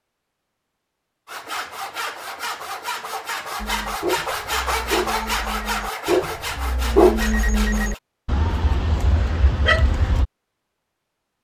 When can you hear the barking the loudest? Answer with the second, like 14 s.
7 s.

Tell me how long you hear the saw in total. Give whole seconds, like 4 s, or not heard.
7 s.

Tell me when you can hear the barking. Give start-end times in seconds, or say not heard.
3.6-10.2.